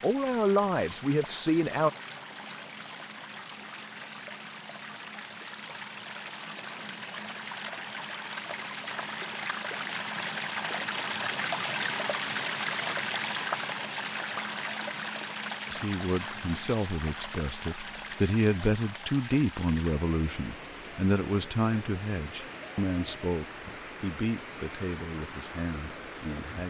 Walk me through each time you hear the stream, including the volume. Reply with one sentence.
The stream can be heard from 0.0 to 26.6 s, getting louder then quieter.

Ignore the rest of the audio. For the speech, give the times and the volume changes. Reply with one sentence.
The speech can be heard briefly from 0.0 to 1.9 s; and from 15.7 to 26.6 s, getting louder then quieter.